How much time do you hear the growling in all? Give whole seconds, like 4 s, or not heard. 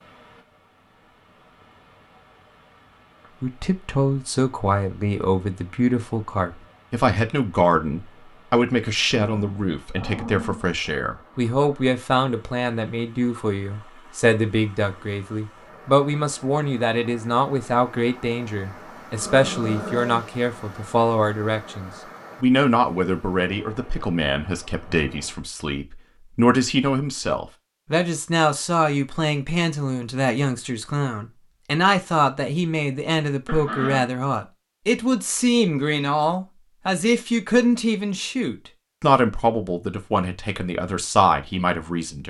3 s.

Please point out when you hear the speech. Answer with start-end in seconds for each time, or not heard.
3.4-42.2.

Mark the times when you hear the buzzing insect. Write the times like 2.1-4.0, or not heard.
not heard.